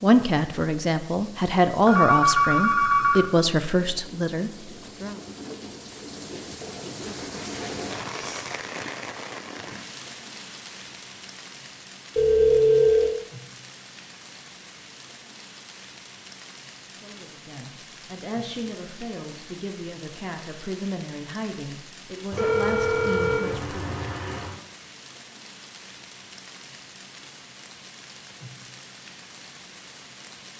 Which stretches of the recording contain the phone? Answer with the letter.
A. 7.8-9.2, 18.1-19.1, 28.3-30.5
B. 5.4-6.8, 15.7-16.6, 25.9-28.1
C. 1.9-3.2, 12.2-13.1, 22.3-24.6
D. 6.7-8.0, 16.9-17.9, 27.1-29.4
C.